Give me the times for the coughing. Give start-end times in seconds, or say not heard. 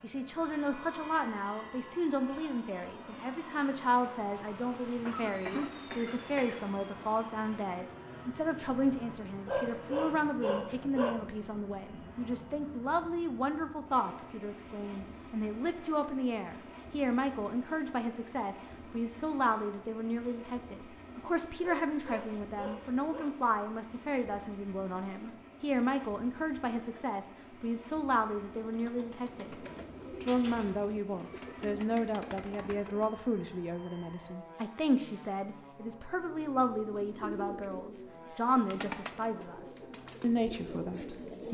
5.0-6.6.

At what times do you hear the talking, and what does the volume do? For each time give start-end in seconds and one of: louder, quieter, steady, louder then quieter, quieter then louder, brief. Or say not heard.
0.0-41.4 steady.